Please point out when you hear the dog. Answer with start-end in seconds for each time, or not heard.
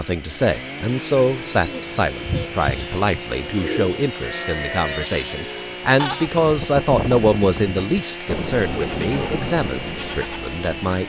not heard.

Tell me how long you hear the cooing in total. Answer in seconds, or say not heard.
3 s.